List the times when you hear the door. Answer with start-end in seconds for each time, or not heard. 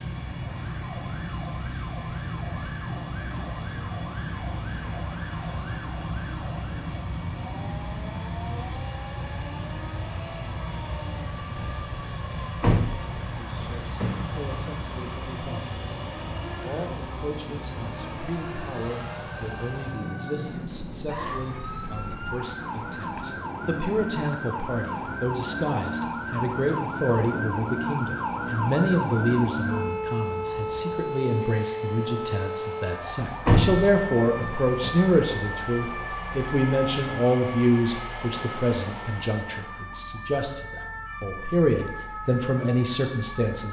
12.6-14.4, 33.5-35.0.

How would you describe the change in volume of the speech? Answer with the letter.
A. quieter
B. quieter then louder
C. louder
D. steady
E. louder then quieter
C.